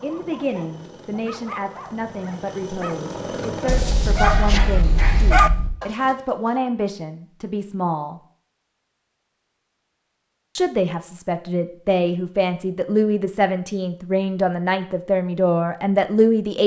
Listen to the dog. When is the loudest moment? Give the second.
5 s.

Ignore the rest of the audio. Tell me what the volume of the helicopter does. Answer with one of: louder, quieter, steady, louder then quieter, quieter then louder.
louder.